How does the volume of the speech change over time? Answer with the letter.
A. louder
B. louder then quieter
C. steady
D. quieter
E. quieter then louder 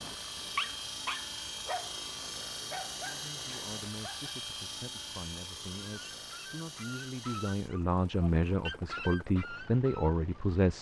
A.